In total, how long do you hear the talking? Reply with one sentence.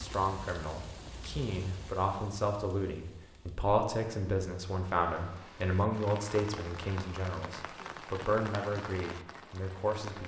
The talking can be heard for 10 seconds in total.